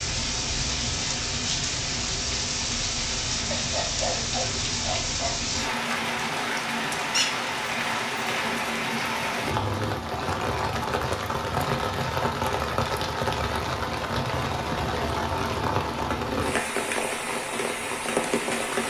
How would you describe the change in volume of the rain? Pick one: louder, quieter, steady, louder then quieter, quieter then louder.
steady.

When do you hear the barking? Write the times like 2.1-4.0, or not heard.
3.5-5.5.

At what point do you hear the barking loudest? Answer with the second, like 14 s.
4 s.